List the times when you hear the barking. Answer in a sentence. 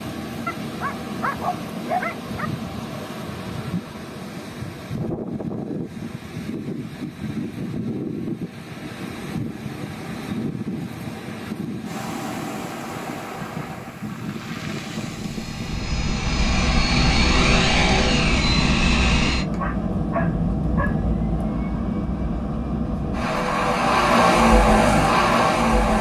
You can hear the barking from 0.5 to 2.5 s and from 19.6 to 21.0 s.